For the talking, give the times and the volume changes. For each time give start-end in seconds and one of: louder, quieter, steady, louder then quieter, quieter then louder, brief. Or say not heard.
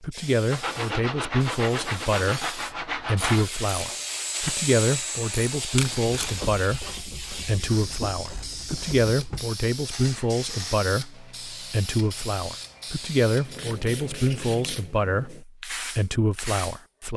0.0-17.1 steady.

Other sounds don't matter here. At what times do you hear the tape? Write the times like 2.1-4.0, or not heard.
5.8-6.4.